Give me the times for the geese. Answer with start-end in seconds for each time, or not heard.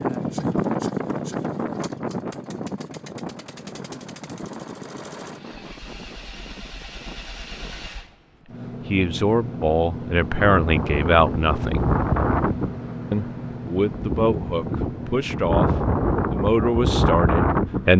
not heard.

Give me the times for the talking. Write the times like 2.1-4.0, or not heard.
8.8-11.9, 13.1-17.9.